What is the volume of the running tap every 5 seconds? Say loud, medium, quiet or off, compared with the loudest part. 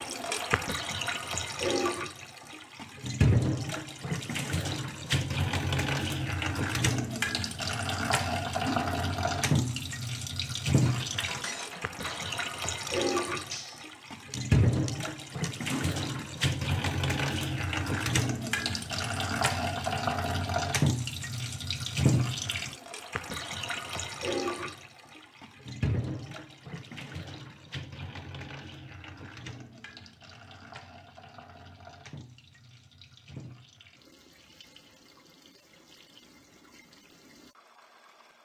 loud, loud, loud, loud, loud, medium, quiet, quiet.